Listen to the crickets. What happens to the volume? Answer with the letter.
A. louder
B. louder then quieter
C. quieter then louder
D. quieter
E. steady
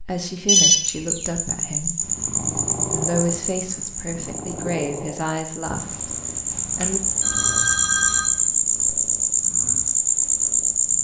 C.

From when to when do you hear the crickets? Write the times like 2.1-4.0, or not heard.
0.0-10.9.